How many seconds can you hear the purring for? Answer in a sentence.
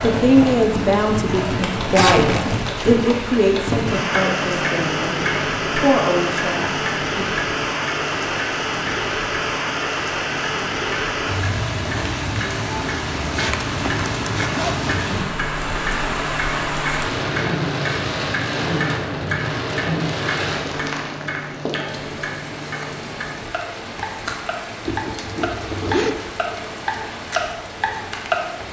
The purring can't be heard in this clip.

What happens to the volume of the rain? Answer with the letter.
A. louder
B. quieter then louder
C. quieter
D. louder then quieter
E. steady
C.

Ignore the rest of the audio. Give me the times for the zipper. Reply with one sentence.
The zipper can be heard from 1.9 to 3.0 s, from 13.3 to 14.9 s and from 24.9 to 26.1 s.